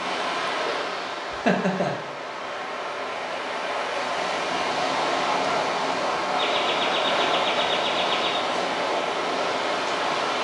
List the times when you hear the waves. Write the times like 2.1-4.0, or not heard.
0.0-10.3.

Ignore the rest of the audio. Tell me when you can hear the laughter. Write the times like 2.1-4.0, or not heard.
1.3-1.9, 6.3-8.4.